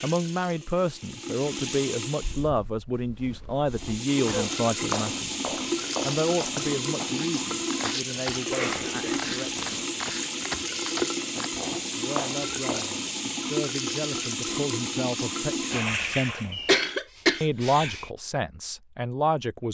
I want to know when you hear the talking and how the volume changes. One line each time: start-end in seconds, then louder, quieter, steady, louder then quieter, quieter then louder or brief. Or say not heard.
0.0-9.7 quieter
11.9-16.6 louder
17.4-19.7 brief.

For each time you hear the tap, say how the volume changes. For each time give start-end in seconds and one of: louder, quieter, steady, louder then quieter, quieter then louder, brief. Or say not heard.
0.0-2.5 brief
3.6-16.6 steady.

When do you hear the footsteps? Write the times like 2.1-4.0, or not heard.
2.2-13.2.